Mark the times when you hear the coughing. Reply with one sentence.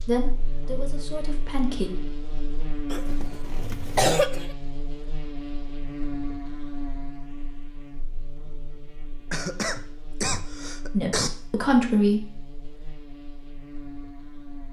The coughing can be heard from 2.9 to 4.5 s and from 9.3 to 11.3 s.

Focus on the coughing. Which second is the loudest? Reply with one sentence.
The volume of the coughing peaks at 4 seconds.